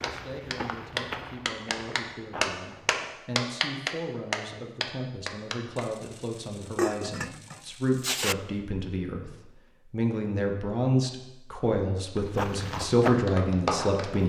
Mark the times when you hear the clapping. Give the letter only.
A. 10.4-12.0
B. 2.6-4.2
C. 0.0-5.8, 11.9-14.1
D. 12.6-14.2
C.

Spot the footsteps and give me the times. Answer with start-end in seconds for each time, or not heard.
0.0-3.1, 12.3-14.2.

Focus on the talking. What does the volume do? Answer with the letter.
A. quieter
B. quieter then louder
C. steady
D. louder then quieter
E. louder
E.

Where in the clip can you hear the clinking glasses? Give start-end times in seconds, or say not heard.
6.8-8.3.